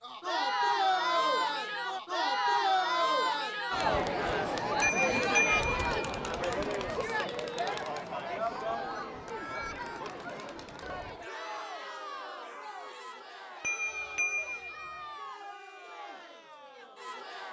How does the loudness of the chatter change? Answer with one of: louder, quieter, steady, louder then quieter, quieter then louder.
quieter.